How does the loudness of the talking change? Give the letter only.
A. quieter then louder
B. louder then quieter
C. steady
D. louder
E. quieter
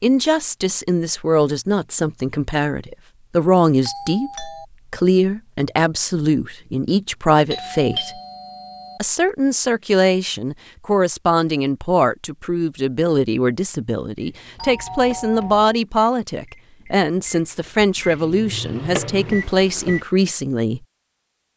C.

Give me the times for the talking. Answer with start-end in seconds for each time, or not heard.
0.0-8.2, 8.9-20.8.